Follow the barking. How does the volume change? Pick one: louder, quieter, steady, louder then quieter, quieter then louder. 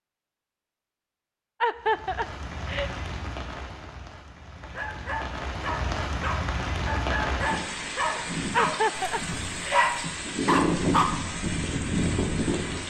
louder.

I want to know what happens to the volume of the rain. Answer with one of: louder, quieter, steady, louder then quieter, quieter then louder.
louder.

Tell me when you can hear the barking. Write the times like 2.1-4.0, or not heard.
4.6-11.1.